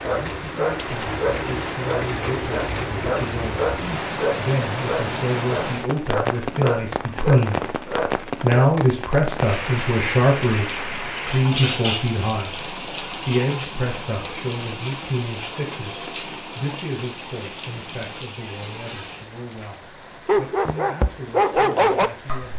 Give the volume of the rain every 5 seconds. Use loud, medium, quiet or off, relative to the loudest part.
loud, loud, loud, medium, medium.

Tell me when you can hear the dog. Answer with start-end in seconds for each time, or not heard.
0.0-8.7, 20.2-22.5.